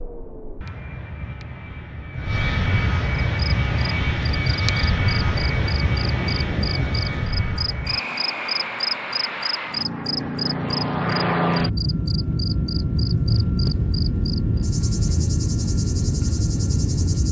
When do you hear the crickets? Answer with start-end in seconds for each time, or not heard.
3.4-17.2.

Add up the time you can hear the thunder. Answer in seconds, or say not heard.
2 s.